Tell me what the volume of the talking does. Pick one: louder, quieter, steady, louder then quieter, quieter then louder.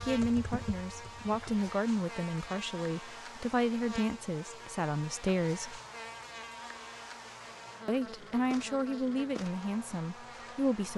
steady.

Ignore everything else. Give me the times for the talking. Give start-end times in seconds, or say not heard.
0.1-5.8, 7.8-10.9.